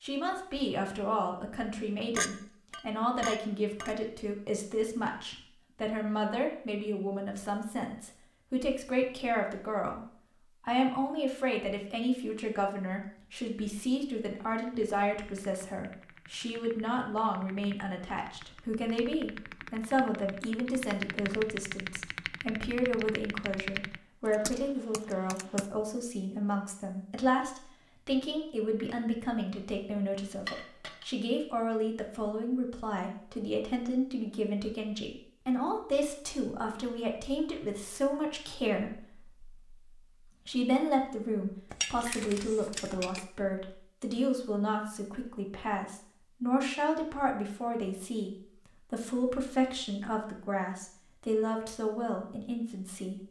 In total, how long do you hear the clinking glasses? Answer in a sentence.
You can hear the clinking glasses for 4 seconds altogether.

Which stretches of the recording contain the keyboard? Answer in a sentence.
You can hear the keyboard from 14.6 to 25.7 s.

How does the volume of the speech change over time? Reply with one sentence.
The volume of the speech stays about the same.